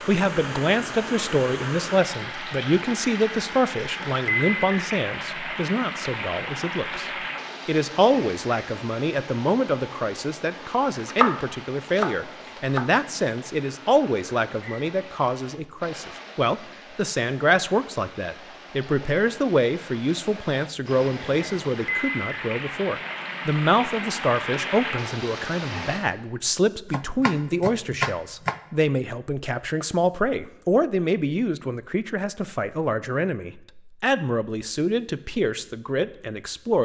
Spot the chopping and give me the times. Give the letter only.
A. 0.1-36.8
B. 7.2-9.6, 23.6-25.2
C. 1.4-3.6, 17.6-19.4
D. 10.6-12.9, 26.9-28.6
D.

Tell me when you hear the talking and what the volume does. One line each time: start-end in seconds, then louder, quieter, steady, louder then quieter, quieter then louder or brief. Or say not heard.
0.1-36.8 steady.